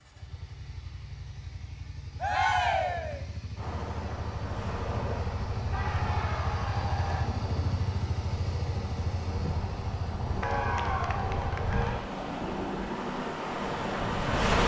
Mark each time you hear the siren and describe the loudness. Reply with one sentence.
The siren can't be heard in this clip.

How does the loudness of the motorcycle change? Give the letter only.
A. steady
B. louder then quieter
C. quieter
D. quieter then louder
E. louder
E.